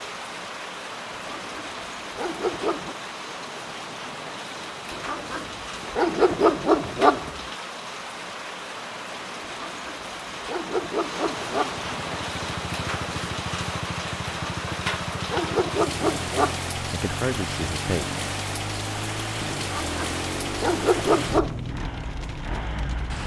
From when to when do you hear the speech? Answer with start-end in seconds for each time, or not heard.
16.9-18.1.